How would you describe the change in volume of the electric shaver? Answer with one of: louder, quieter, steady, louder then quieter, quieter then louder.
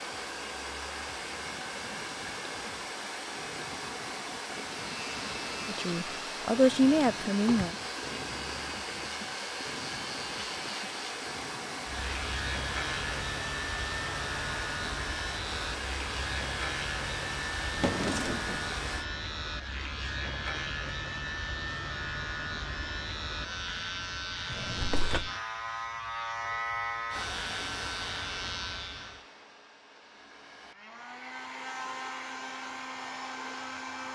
louder.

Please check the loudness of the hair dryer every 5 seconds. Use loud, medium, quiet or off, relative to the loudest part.
loud, loud, loud, loud, off, medium, loud.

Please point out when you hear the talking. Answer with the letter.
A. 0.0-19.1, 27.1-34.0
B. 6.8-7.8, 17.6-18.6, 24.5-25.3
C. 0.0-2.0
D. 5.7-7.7
D.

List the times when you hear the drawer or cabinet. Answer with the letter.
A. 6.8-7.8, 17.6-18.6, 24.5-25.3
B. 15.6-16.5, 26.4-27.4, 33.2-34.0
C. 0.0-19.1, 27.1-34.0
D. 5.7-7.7
A.